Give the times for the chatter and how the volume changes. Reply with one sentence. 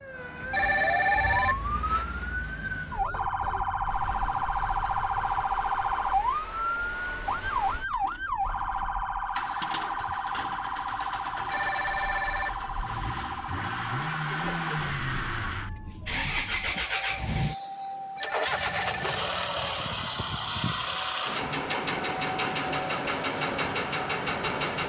The chatter can't be heard in this clip.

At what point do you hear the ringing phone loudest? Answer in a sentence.
The loudest moment of the ringing phone is at 1 second.